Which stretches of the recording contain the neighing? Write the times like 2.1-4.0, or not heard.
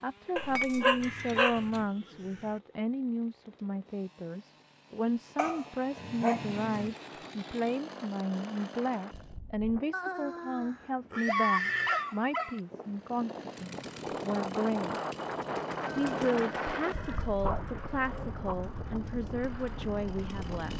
1.0-2.6, 9.9-12.1, 15.8-17.4.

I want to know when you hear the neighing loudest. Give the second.
12 s.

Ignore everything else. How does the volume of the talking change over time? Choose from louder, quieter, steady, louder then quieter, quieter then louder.
steady.